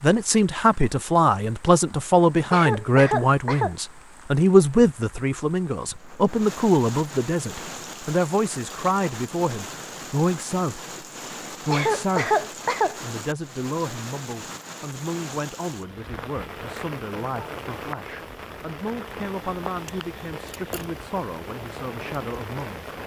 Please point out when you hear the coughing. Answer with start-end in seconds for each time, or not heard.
2.5-3.8, 11.7-12.9.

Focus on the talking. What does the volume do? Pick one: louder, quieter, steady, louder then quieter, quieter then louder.
quieter.